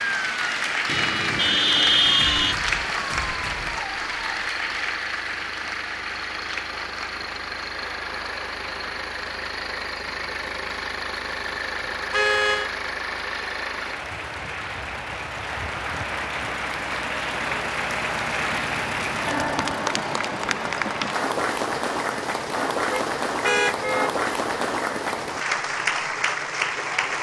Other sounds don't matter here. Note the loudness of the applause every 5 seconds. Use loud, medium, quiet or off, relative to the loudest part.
loud, medium, medium, loud, loud, loud.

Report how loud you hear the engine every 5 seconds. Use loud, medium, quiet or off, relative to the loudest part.
loud, loud, loud, loud, medium, medium.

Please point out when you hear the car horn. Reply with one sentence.
The car horn can be heard from 0.8 to 2.5 s, from 12.1 to 12.7 s and from 22.9 to 24.1 s.